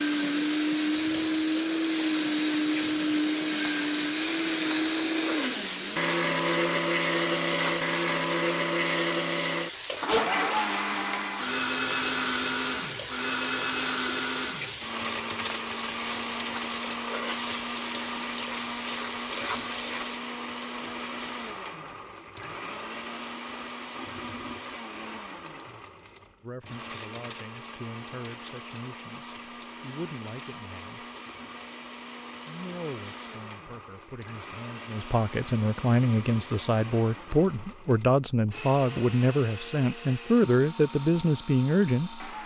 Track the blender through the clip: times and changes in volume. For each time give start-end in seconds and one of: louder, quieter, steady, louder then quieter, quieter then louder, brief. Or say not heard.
0.0-42.4 quieter.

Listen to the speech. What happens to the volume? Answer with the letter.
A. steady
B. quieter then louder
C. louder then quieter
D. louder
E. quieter
D.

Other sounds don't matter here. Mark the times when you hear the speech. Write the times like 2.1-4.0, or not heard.
26.4-31.1, 32.5-42.4.